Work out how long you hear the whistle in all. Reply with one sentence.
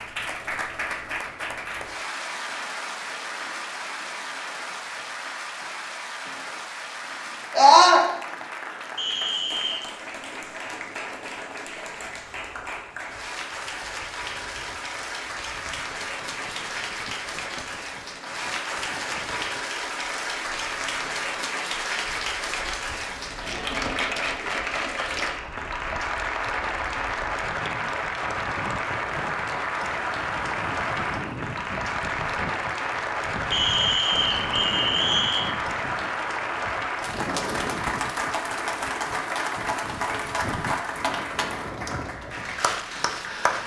You can hear the whistle for 3 seconds altogether.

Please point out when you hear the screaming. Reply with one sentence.
You can hear the screaming from 7.5 to 8.1 s.